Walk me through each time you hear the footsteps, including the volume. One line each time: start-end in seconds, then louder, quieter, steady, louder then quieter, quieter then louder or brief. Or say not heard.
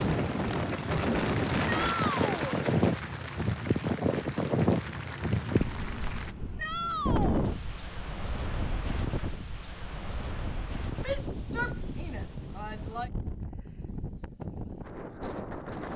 not heard.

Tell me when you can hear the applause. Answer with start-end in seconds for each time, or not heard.
0.0-6.3.